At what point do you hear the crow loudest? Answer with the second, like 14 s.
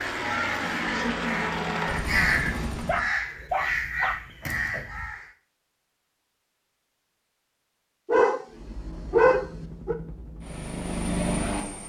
2 s.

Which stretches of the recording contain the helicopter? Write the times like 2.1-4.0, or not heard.
0.0-3.1, 8.5-11.8.